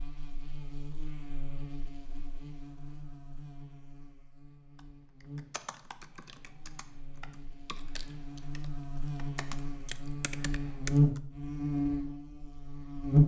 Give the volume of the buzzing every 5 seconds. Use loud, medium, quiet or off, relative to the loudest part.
quiet, quiet, loud.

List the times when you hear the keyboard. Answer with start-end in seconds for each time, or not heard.
4.8-11.2.